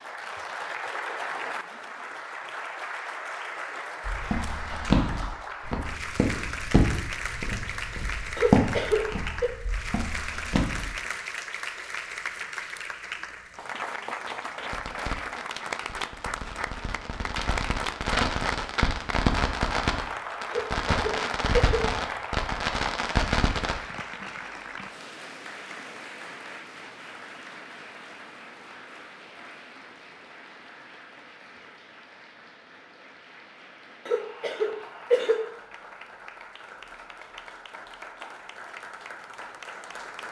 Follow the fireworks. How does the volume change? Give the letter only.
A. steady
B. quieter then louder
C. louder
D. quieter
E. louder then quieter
C.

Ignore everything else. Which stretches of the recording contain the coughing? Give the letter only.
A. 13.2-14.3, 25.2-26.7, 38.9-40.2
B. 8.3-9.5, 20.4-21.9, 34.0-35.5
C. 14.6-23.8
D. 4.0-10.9
B.